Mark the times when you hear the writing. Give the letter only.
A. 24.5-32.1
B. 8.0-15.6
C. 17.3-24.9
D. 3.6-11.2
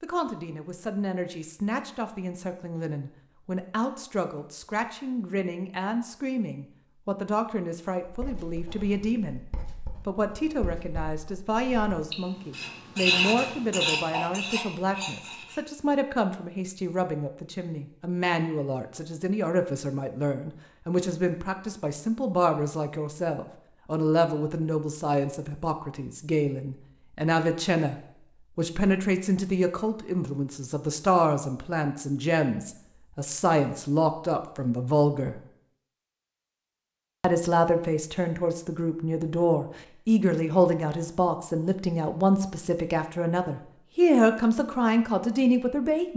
B.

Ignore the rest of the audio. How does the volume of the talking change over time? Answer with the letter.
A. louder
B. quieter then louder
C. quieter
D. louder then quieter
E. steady
A.